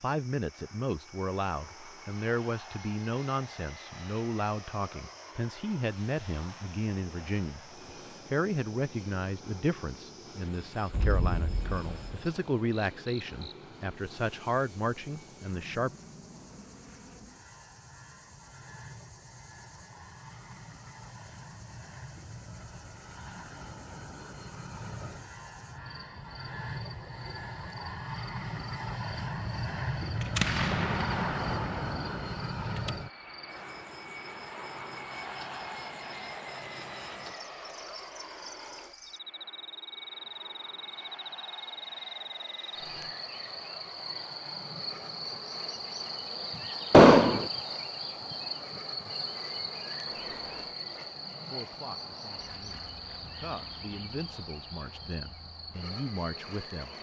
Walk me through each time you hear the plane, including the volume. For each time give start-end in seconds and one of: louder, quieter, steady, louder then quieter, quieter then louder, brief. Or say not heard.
0.0-56.9 louder then quieter.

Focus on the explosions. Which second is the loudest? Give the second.
47 s.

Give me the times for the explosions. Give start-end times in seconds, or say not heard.
10.9-12.2, 30.2-32.9, 46.9-47.5.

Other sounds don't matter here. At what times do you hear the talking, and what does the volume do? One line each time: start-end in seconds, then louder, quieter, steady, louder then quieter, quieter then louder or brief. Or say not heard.
0.0-15.9 steady
51.5-56.9 louder.